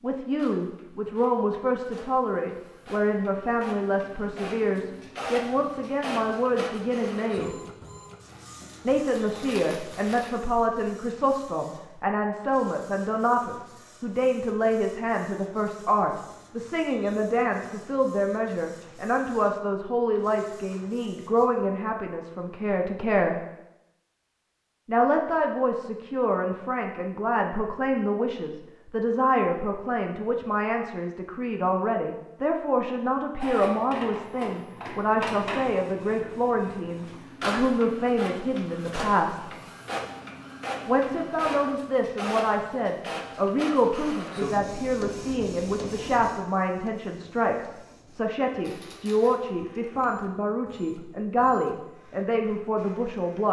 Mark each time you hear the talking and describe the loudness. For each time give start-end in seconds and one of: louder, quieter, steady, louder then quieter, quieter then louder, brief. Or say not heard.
0.0-7.5 steady
8.8-23.4 steady
24.9-39.5 steady
40.9-53.4 steady.